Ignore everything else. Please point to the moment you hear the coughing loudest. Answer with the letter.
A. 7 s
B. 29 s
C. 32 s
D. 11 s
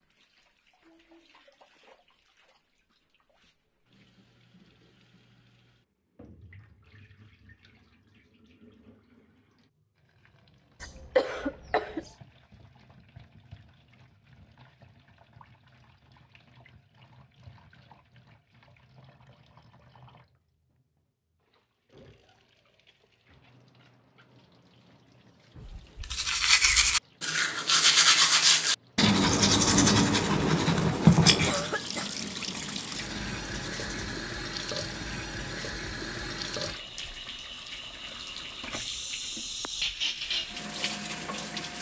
D.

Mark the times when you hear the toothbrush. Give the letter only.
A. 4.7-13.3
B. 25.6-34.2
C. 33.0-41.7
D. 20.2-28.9
B.